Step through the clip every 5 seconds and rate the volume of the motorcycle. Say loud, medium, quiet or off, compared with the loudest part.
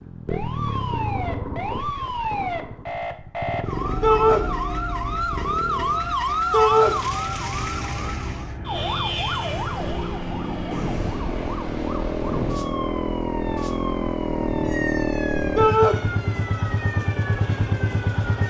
medium, medium, loud, loud.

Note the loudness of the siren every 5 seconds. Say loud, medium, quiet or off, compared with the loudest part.
loud, loud, medium, medium.